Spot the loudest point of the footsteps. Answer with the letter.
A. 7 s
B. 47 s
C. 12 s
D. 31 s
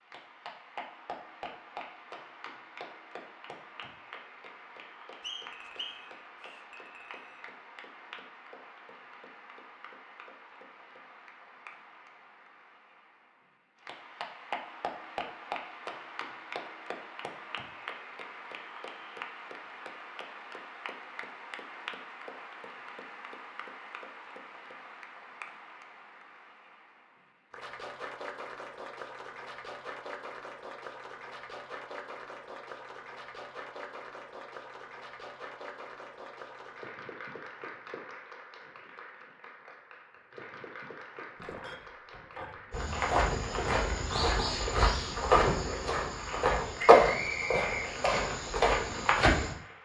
B.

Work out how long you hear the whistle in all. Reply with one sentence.
You can hear the whistle for 3 seconds altogether.